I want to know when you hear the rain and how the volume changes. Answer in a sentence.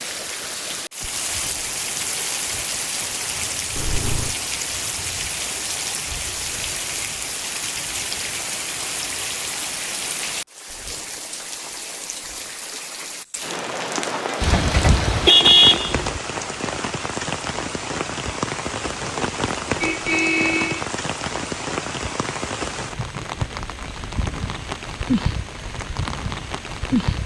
You can hear the rain from 0.0 to 27.2 s, at a steady volume.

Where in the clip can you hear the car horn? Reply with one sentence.
The car horn can be heard from 3.8 to 4.3 s, from 14.4 to 16.2 s and from 19.8 to 20.9 s.